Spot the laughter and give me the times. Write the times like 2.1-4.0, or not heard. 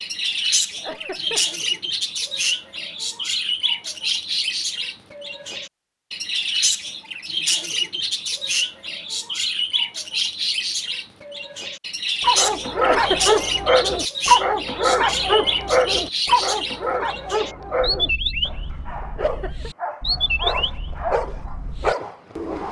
0.7-1.4, 12.8-13.4, 19.1-19.7.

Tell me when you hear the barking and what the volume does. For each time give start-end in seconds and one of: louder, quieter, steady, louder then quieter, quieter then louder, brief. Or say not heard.
12.2-22.6 quieter then louder.